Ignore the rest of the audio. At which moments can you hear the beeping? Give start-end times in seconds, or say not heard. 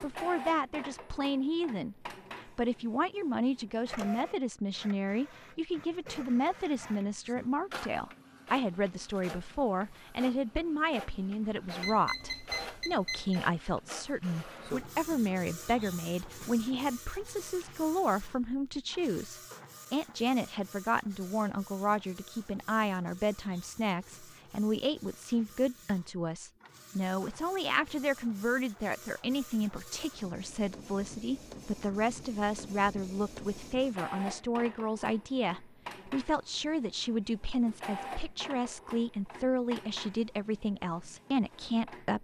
11.8-13.4.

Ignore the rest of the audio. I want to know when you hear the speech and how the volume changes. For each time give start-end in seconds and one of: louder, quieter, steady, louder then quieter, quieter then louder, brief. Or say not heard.
0.0-42.1 steady.